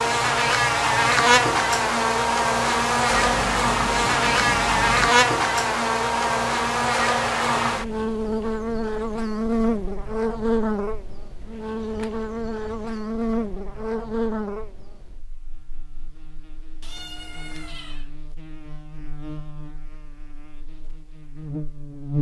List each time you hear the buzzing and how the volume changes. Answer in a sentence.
The buzzing can be heard from 0.0 to 22.1 s, getting quieter.